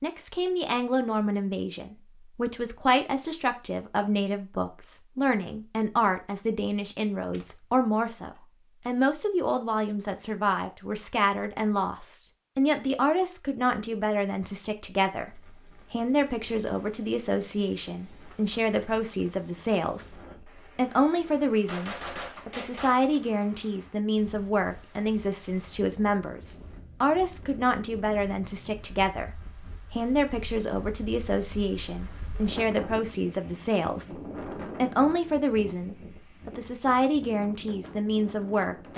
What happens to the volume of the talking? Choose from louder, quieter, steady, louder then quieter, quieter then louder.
steady.